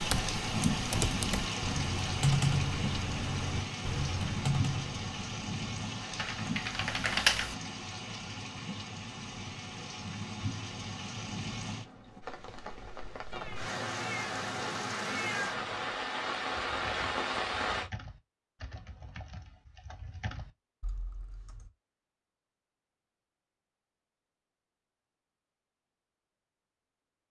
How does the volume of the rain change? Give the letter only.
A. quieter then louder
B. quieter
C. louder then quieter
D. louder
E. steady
A.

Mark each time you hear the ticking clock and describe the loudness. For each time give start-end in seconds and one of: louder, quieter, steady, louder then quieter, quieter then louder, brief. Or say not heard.
not heard.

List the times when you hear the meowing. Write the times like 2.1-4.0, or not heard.
13.3-15.9.